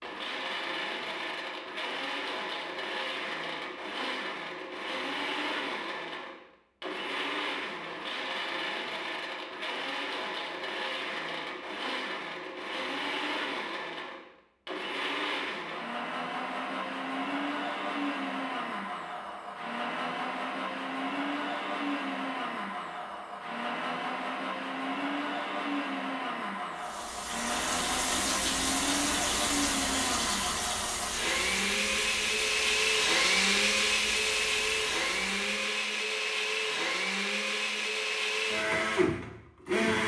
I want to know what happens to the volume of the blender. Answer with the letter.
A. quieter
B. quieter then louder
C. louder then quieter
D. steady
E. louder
E.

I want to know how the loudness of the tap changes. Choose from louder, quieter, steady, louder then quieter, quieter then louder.
quieter.